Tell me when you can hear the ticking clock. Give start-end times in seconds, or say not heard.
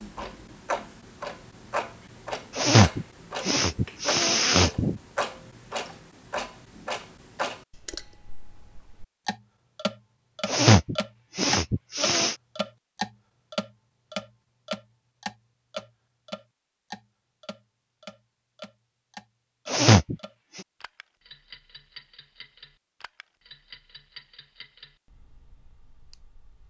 0.0-26.6.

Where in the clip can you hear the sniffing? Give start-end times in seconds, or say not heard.
2.5-5.0, 10.4-12.3, 19.6-20.6.